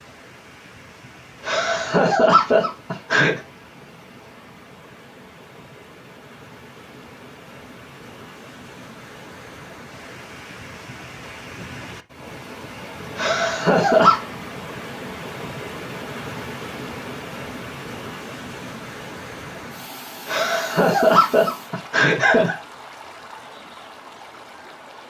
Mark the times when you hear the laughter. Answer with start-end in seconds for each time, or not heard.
1.4-3.4, 13.2-14.2, 20.2-22.6.